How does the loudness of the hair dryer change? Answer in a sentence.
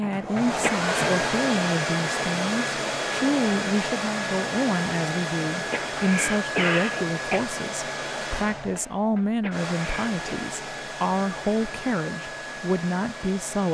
The loudness of the hair dryer goes down.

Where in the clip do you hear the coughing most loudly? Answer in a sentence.
The loudest moment of the coughing is at 7 seconds.